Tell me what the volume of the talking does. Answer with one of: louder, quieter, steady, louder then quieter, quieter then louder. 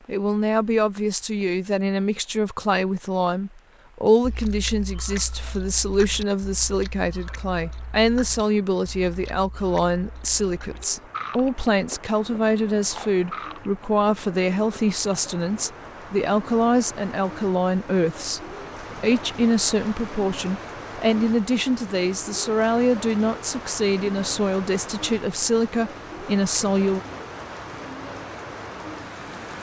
steady.